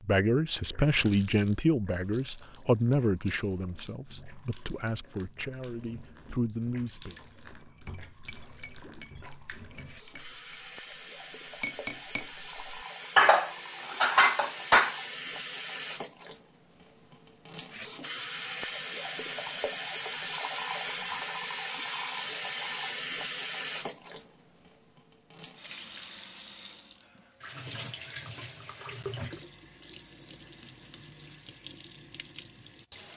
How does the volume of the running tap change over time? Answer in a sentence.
The volume of the running tap goes up, then down.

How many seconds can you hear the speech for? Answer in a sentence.
The speech can be heard for 7 seconds in total.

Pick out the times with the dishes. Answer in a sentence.
You can hear the dishes from 7.6 to 12.2 s and from 13.2 to 14.9 s.